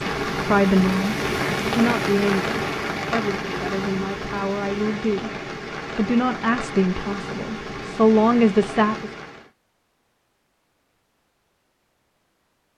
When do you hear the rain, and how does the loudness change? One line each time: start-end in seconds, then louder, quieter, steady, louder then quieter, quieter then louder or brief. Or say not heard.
0.0-9.5 quieter.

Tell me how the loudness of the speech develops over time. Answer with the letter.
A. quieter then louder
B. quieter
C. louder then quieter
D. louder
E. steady
A.